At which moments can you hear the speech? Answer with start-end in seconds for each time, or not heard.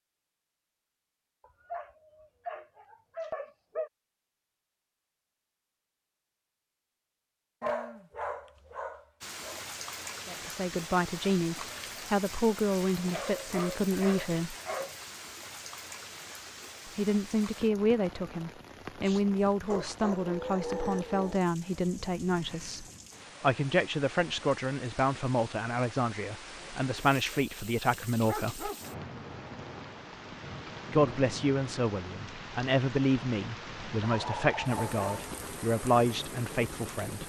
10.2-14.6, 16.9-28.7, 30.9-37.2.